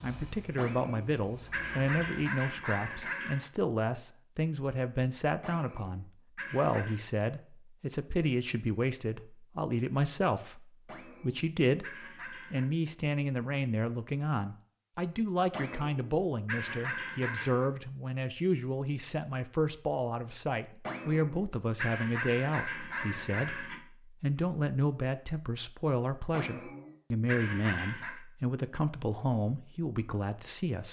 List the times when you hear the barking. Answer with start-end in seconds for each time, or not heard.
0.6-3.5, 5.4-7.0, 10.8-12.7, 15.5-17.7, 20.8-23.8, 26.3-28.2.